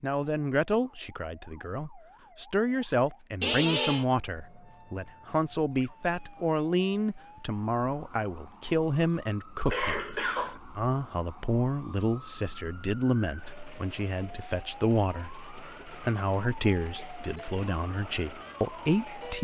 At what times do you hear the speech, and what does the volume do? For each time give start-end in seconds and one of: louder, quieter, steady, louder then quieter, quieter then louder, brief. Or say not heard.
0.0-19.3 steady.